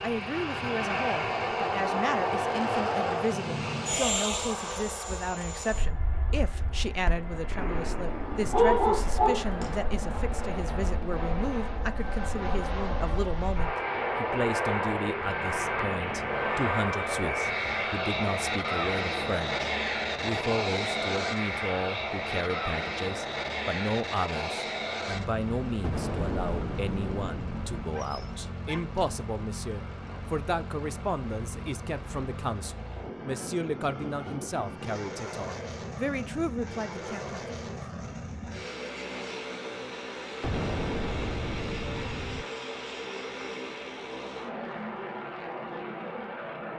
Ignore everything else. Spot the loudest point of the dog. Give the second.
9 s.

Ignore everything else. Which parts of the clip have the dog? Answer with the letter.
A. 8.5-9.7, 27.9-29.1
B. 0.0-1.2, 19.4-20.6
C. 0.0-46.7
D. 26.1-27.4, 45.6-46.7
A.